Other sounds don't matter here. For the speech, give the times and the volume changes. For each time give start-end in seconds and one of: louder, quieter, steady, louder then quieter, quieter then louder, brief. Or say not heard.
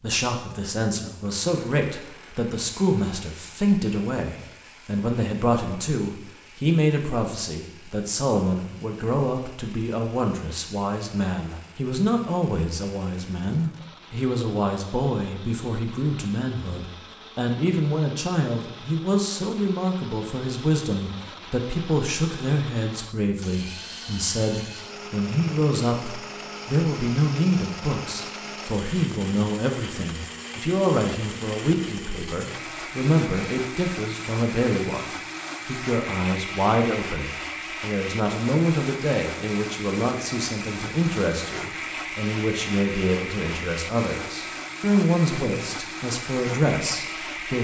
0.0-47.5 steady.